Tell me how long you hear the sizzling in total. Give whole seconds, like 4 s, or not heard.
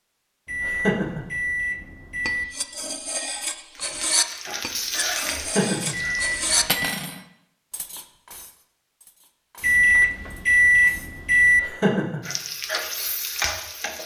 5 s.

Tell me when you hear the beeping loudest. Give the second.
11 s.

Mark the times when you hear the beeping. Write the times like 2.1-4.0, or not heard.
0.5-2.5, 5.9-6.9, 9.6-11.6.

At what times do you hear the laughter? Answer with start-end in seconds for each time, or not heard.
0.6-1.2, 5.3-5.9, 11.6-12.2.